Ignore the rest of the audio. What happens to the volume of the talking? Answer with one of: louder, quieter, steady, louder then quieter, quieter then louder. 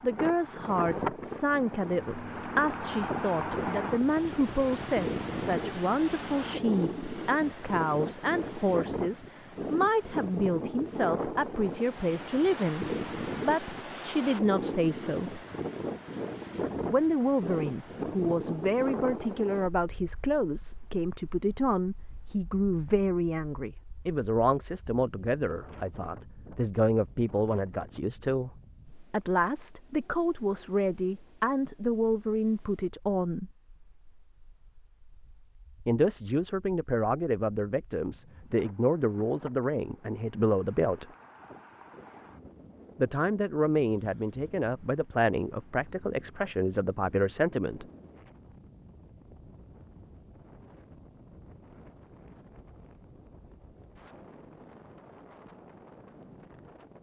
steady.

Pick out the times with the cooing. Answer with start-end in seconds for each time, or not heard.
not heard.